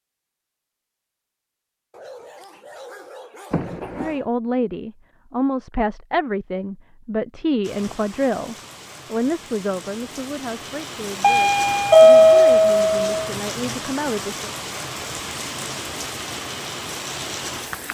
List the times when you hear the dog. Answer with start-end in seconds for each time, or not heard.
1.9-4.3.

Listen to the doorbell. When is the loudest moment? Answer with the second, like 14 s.
12 s.